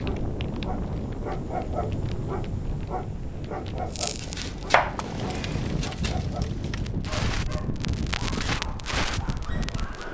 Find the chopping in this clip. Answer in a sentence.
You can hear the chopping from 4.2 to 6.2 s.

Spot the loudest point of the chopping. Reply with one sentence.
The loudest moment of the chopping is at 5 seconds.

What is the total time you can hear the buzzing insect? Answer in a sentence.
The buzzing insect can't be heard in this clip.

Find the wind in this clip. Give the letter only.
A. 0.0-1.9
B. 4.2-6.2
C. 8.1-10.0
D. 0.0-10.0
D.